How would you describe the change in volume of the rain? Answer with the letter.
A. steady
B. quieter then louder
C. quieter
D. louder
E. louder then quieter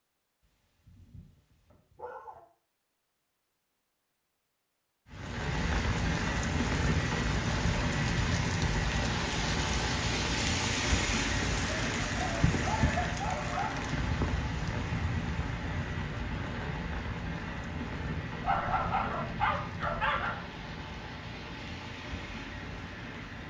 C.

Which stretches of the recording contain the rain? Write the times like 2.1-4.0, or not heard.
5.1-23.4.